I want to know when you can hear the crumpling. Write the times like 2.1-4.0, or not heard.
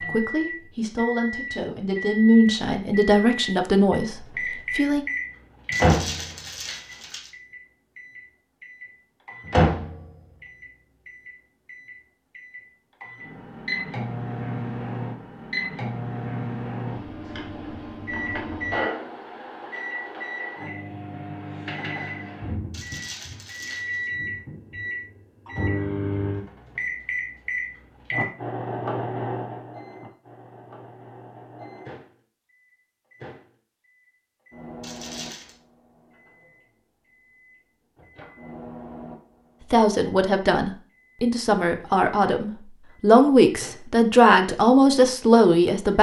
5.7-7.3, 22.7-24.1, 34.8-35.5.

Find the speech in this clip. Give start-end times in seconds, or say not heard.
0.1-5.0, 39.7-45.9.